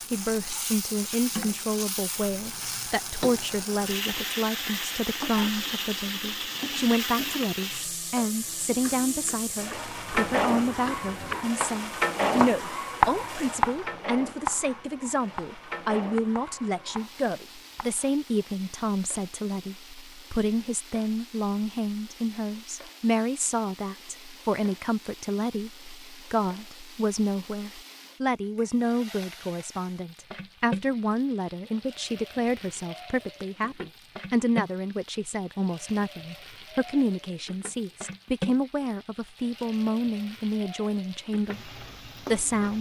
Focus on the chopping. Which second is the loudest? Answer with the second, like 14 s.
13 s.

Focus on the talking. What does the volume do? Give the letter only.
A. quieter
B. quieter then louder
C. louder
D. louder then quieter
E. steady
E.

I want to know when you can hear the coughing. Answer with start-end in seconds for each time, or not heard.
not heard.